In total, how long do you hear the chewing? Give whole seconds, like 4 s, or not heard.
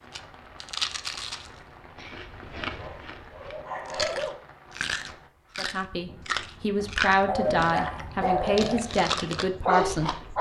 10 s.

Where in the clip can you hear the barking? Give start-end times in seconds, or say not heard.
2.6-4.3, 7.2-10.3.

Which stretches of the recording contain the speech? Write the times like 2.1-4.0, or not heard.
5.5-10.2.